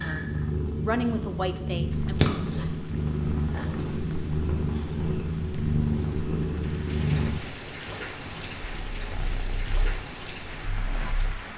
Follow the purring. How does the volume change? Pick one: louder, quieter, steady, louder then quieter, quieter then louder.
quieter.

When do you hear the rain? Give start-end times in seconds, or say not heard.
1.8-11.5.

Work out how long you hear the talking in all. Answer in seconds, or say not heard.
2 s.